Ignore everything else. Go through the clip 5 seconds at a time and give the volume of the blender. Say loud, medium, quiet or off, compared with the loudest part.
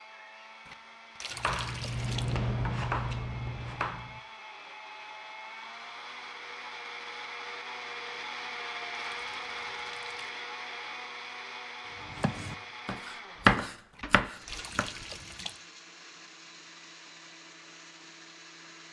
medium, loud, loud, medium.